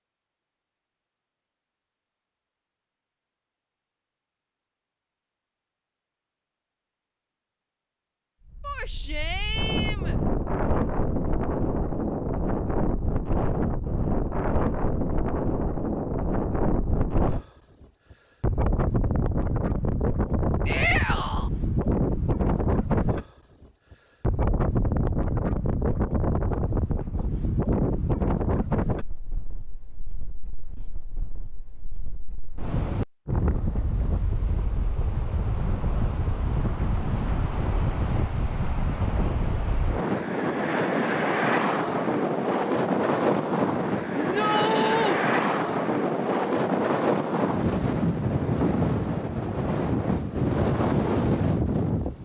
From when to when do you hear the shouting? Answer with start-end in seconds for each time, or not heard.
8.6-10.2, 20.6-21.5, 44.1-45.2.